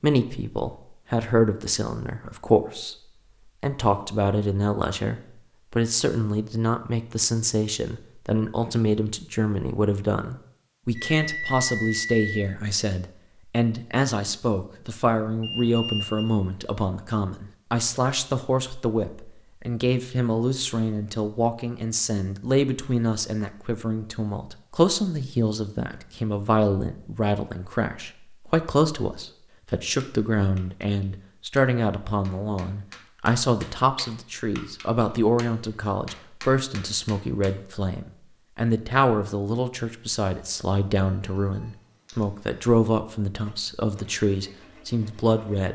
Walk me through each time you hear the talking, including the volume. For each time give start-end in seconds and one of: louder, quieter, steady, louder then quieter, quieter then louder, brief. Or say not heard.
0.0-3.0 brief
3.6-45.6 steady.